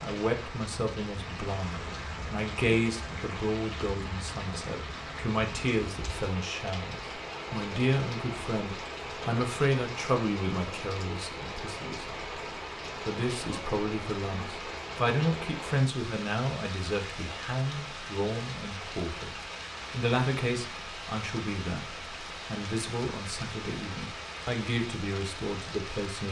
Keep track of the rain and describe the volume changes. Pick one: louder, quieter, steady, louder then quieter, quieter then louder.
steady.